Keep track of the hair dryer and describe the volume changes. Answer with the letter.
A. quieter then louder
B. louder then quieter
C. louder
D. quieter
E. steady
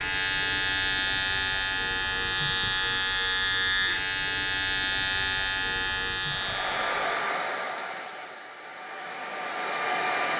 A.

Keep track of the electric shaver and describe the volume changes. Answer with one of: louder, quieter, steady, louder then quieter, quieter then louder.
steady.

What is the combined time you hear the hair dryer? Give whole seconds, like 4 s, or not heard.
4 s.